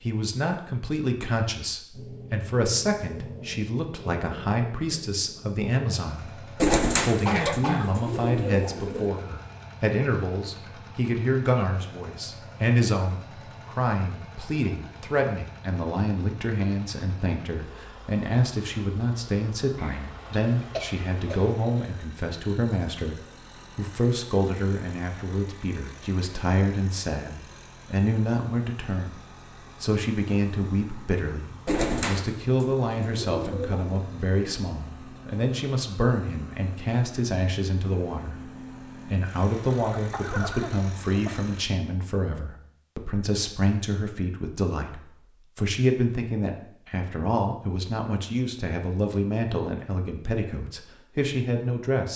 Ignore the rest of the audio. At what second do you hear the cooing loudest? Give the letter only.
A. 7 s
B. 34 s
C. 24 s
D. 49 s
A.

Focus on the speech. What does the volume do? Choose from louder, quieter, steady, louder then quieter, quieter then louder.
steady.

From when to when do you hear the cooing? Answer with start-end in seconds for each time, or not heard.
6.5-9.1, 31.6-33.9.